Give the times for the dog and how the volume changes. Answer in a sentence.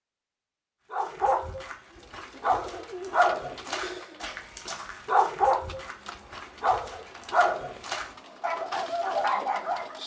You can hear the dog from 0.9 to 10.0 s, at a steady volume.